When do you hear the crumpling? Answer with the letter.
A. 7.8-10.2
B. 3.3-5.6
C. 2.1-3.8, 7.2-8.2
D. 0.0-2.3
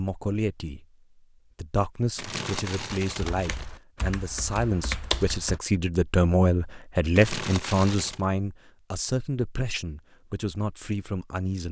C.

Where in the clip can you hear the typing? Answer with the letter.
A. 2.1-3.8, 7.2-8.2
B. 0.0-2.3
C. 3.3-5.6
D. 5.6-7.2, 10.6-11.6
C.